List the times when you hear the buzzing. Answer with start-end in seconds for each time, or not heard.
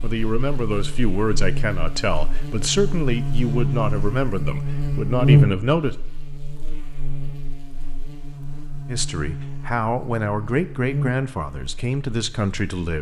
0.0-12.9.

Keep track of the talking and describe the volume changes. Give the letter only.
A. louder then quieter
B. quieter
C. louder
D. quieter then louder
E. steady
E.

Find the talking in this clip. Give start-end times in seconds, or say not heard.
0.0-6.0, 8.8-12.9.